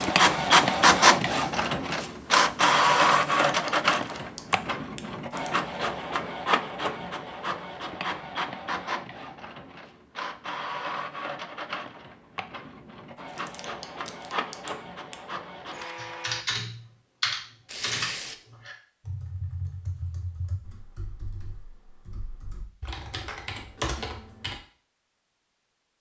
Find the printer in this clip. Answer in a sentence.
The printer can be heard from 0.0 to 16.4 s.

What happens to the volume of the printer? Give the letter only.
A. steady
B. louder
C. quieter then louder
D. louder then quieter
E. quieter
E.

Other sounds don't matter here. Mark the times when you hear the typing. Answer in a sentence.
You can hear the typing from 15.9 to 24.6 s.